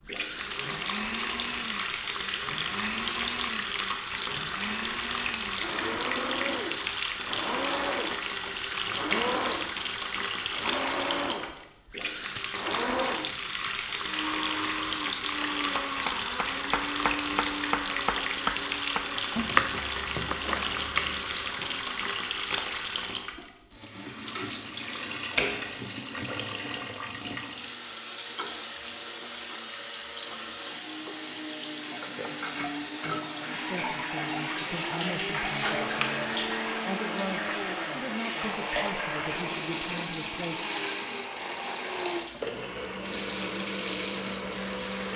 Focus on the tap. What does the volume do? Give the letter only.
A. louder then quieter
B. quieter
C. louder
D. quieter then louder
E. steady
E.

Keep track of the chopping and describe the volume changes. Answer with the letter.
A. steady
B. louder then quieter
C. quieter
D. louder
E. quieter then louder
B.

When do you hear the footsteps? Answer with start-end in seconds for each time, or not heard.
not heard.